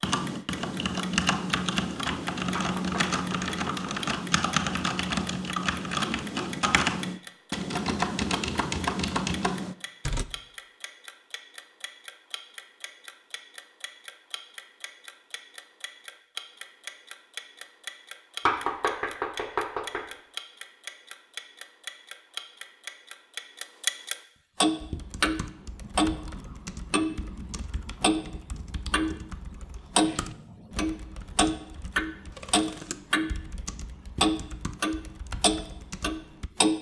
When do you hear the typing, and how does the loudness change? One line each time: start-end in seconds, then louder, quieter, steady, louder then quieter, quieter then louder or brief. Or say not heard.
0.0-10.2 steady
24.8-36.5 steady.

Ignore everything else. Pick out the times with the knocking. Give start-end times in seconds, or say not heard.
2.5-4.1, 18.4-20.1.